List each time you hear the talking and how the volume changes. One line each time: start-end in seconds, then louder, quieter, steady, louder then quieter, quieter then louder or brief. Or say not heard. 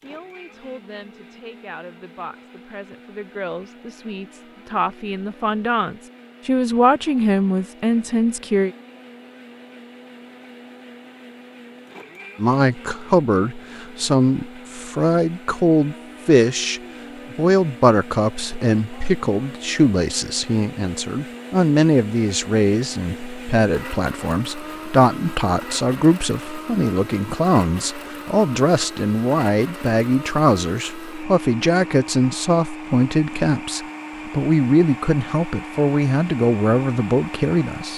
0.0-8.7 louder
12.3-37.9 steady.